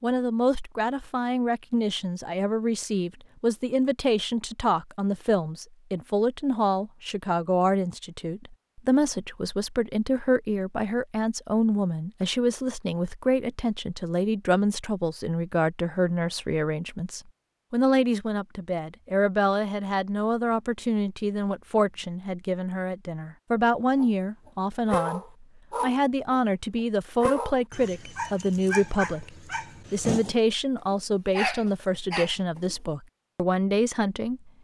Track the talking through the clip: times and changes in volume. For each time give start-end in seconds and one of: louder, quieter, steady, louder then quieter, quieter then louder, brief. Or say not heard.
0.0-34.5 steady.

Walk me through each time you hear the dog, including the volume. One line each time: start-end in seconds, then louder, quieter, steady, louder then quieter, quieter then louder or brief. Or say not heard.
23.9-26.4 brief
27.2-32.8 louder.